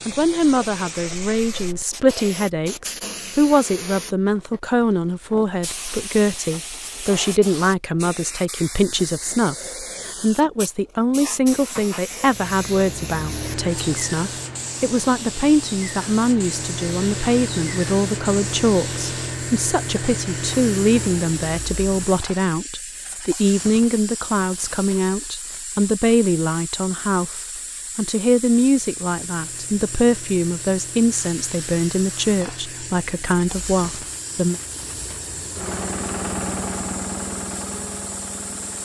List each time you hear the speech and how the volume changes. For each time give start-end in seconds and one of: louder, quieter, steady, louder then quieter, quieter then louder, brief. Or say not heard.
0.1-34.6 steady.